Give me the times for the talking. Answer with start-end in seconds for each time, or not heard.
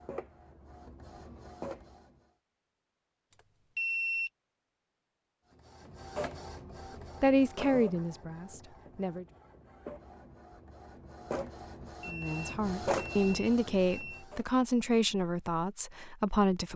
7.2-9.2, 12.1-16.7.